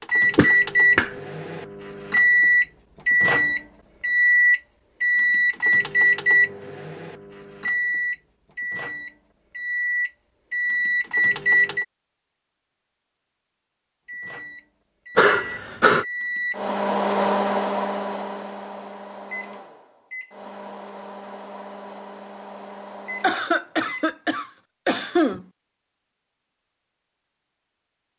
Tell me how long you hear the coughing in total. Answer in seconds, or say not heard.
4 s.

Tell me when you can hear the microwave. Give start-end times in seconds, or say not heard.
0.0-11.8, 14.1-24.1.